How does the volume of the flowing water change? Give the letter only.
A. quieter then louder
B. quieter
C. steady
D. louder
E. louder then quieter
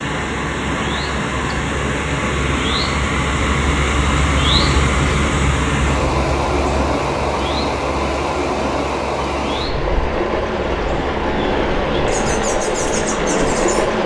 C.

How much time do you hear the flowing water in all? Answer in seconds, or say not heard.
14 s.